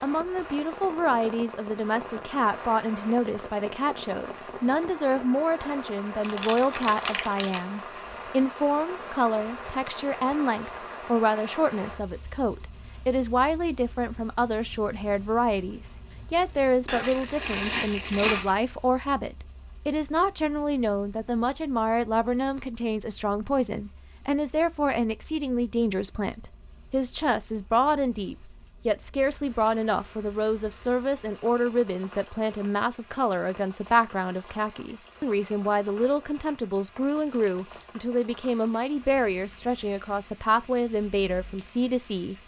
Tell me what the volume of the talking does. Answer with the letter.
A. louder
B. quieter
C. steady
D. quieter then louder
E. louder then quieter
C.